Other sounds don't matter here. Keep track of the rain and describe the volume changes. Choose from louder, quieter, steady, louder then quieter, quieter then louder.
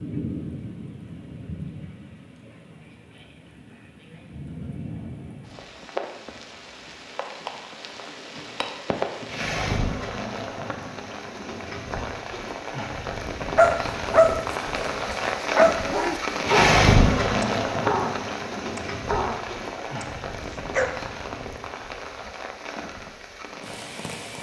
louder then quieter.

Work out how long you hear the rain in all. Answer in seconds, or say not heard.
24 s.